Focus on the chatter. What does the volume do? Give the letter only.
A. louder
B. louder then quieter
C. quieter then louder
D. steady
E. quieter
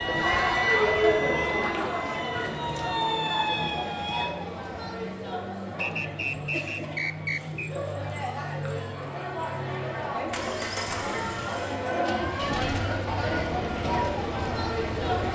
C.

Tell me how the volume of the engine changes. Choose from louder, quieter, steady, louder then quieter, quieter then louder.
louder.